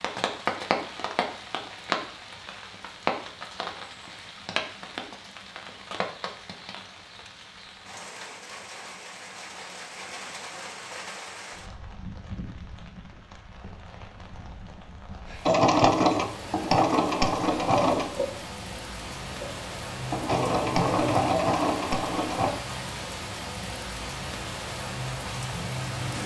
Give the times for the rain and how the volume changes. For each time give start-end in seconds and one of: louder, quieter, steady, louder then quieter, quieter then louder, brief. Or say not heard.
0.0-26.2 quieter then louder.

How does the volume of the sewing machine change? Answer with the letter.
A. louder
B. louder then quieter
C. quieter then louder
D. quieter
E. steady
C.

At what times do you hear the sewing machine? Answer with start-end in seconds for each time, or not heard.
15.4-22.5.